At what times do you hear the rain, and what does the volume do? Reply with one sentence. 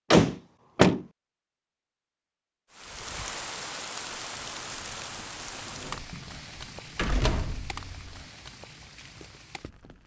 The rain can be heard from 2.7 to 10.0 s, getting quieter.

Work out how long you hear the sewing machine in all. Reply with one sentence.
The sewing machine can't be heard in this clip.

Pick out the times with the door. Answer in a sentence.
You can hear the door from 0.1 to 1.0 s and from 6.0 to 8.2 s.